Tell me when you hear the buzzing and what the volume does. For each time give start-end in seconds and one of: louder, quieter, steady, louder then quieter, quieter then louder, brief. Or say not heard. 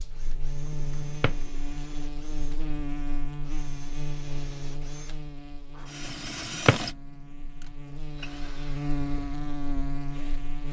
0.0-10.6 quieter then louder.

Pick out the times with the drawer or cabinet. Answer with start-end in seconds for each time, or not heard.
0.7-1.4, 6.1-6.9.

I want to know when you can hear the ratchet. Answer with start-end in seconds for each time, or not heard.
not heard.